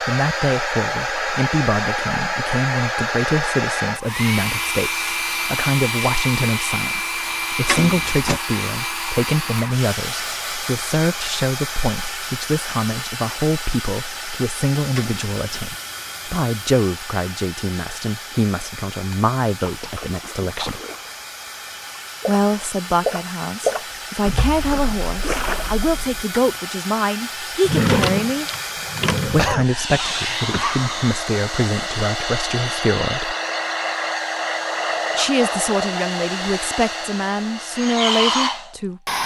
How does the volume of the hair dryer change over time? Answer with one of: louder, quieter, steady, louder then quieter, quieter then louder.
quieter then louder.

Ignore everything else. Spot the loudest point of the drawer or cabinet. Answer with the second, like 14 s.
28 s.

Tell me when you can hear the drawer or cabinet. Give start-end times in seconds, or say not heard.
7.7-8.4, 14.9-15.7, 27.6-29.6.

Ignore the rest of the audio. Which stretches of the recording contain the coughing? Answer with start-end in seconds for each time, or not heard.
29.4-30.9.